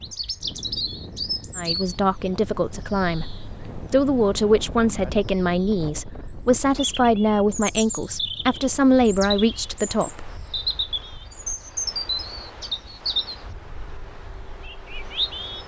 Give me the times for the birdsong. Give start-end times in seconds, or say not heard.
0.0-15.6.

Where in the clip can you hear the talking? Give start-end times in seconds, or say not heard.
1.6-10.3.